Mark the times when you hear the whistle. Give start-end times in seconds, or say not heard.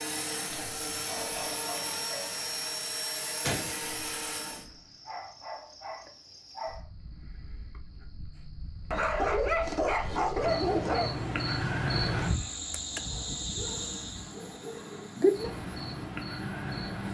not heard.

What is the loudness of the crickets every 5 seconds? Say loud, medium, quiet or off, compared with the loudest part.
quiet, quiet, loud, loud.